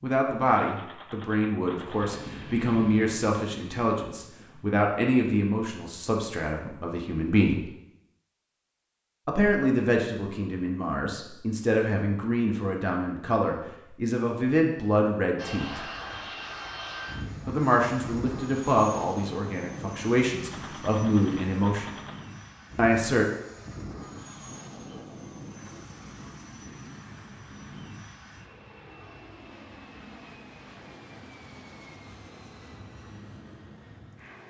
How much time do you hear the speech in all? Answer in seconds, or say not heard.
19 s.